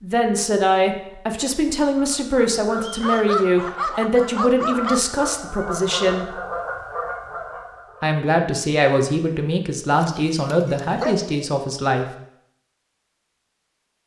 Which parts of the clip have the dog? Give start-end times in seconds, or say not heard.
3.0-5.0, 10.0-11.6.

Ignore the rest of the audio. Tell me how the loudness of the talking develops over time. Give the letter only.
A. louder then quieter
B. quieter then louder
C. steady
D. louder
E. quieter
C.